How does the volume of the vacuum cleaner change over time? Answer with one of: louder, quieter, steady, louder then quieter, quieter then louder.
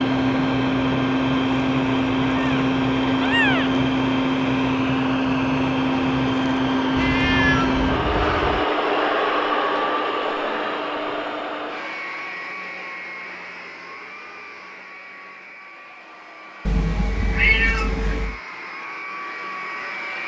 quieter.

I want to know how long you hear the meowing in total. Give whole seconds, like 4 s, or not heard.
5 s.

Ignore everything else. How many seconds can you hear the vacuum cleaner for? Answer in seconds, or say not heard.
20 s.